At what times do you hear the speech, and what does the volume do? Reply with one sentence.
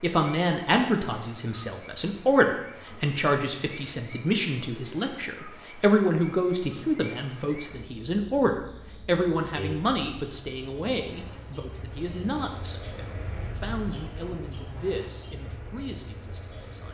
You can hear the speech from 0.0 to 16.8 s, getting quieter.